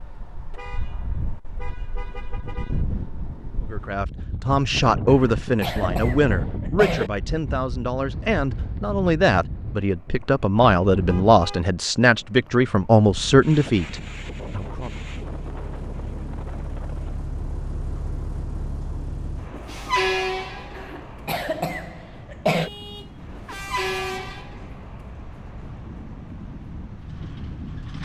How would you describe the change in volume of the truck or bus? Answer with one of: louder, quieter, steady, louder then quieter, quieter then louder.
louder then quieter.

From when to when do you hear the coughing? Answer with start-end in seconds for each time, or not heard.
5.0-7.1, 20.8-22.7.